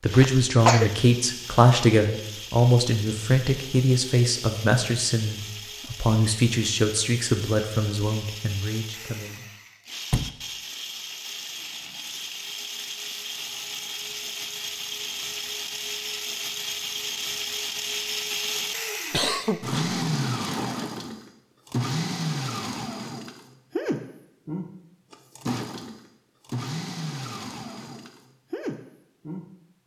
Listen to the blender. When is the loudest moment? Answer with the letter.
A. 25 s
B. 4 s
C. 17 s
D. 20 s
D.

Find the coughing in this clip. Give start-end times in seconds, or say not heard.
0.1-0.9, 19.1-19.9.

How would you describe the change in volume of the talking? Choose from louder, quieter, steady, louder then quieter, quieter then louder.
quieter.